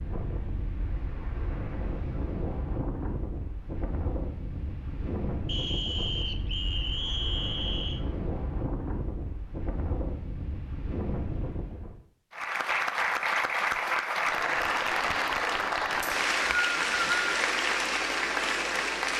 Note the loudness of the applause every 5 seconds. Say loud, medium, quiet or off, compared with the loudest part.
off, off, loud, loud.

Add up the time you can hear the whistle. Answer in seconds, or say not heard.
4 s.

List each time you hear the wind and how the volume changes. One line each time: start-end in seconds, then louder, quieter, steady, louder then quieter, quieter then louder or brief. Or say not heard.
0.0-12.0 steady.